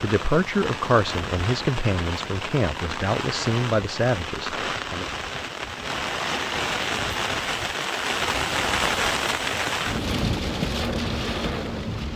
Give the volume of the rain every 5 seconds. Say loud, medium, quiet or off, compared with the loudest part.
medium, loud, loud.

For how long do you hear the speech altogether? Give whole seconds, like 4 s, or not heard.
5 s.